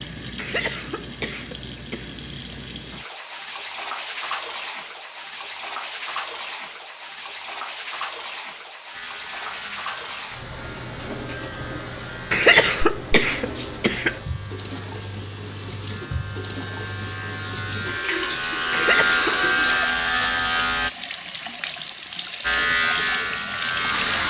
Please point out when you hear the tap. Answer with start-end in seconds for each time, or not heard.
0.0-24.1.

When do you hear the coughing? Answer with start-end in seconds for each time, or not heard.
0.3-2.1, 12.3-14.2, 18.7-19.4.